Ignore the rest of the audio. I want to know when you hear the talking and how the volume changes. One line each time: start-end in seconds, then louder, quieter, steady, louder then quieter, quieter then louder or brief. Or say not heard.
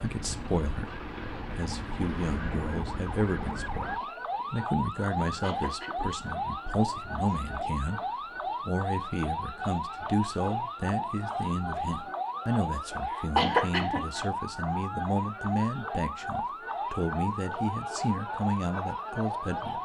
0.0-19.7 steady.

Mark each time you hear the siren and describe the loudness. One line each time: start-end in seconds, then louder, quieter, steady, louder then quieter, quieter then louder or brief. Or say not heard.
0.0-19.7 steady.